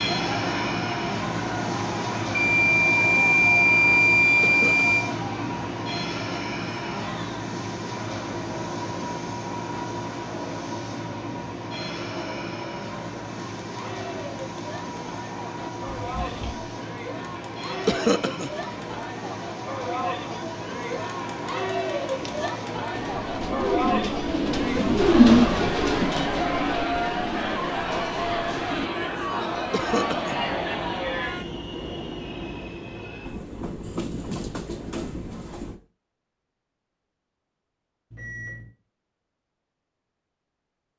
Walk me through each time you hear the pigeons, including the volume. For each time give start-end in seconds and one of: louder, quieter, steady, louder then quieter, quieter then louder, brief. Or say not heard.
22.1-28.9 louder then quieter.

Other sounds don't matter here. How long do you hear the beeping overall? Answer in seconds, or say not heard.
4 s.